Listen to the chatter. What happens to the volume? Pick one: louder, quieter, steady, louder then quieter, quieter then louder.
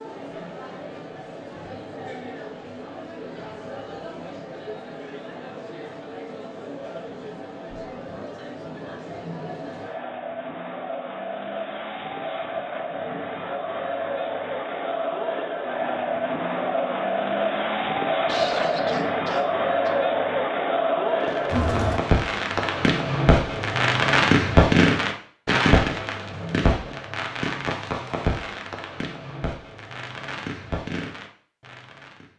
louder.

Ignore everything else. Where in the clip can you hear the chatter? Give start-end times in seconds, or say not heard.
0.0-22.0.